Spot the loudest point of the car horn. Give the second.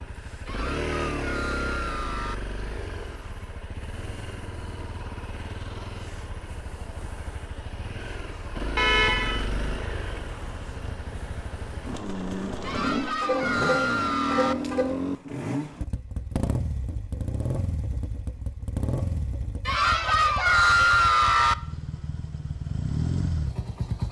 9 s.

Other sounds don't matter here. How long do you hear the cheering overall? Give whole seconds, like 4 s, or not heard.
6 s.